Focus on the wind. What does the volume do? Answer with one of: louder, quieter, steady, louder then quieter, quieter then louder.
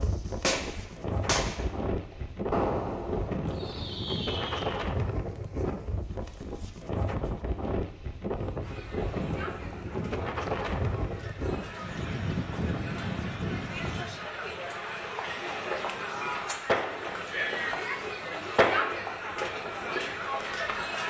quieter.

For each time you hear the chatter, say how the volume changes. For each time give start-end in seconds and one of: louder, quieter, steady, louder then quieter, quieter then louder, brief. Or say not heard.
8.6-21.0 louder.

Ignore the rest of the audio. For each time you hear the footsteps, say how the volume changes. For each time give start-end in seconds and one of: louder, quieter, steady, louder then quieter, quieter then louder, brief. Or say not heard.
not heard.